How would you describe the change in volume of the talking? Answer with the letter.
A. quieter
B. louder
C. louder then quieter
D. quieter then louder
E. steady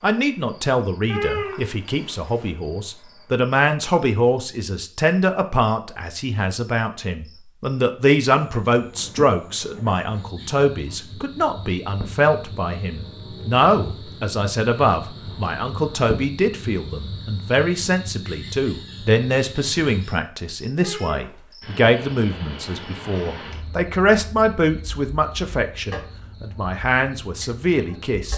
E.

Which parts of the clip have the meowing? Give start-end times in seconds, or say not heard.
1.1-2.5, 20.8-21.5.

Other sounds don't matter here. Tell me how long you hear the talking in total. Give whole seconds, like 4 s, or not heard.
28 s.